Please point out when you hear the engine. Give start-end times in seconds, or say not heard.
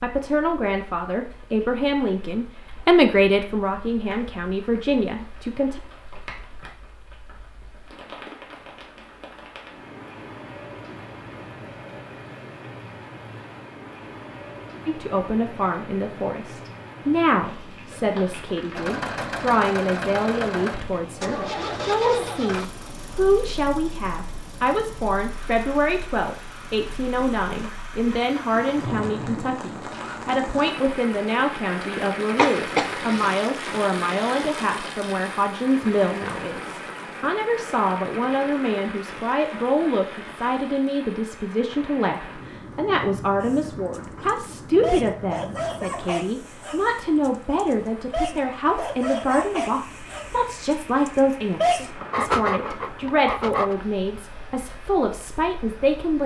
18.8-30.2.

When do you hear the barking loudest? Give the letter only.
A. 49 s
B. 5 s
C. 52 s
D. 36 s
C.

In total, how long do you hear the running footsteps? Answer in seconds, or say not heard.
not heard.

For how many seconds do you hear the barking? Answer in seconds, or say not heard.
10 s.